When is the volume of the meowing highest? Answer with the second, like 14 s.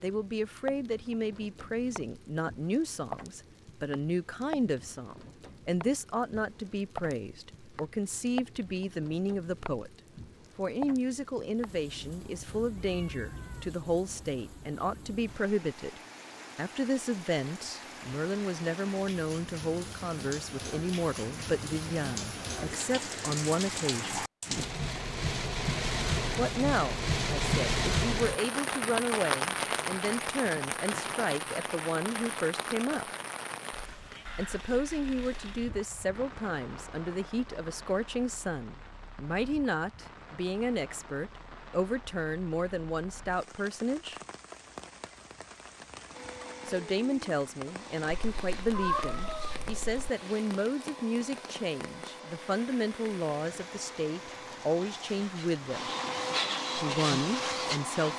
49 s.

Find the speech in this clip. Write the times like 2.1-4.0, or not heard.
0.0-9.9, 10.6-24.2, 26.4-33.1, 34.4-44.2, 46.6-55.9, 56.8-58.1.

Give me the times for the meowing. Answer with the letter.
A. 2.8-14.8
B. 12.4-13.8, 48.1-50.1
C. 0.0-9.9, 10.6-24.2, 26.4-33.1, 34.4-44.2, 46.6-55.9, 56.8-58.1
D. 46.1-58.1
B.